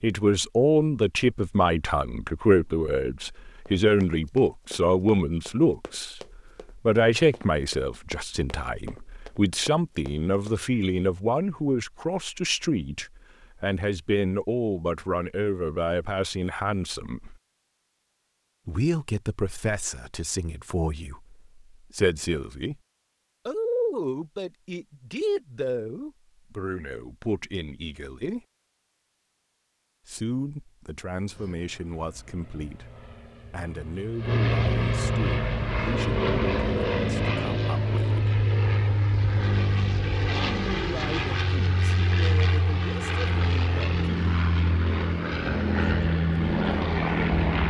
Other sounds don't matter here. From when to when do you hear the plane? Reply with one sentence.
You can hear the plane from 31.3 to 47.6 s.